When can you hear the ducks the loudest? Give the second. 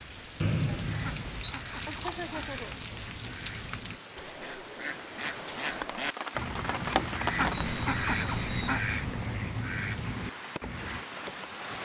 8 s.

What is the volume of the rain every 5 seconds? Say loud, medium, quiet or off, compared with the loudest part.
medium, loud, loud.